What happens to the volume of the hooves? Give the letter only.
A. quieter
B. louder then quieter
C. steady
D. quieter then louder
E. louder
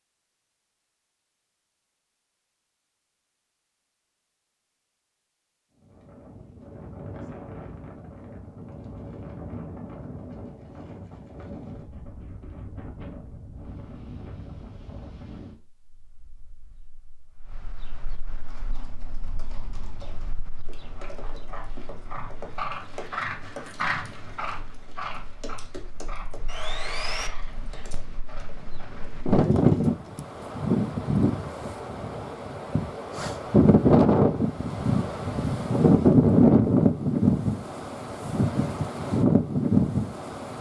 B.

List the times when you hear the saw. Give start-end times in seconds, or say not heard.
26.4-27.3.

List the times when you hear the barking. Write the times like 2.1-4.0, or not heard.
not heard.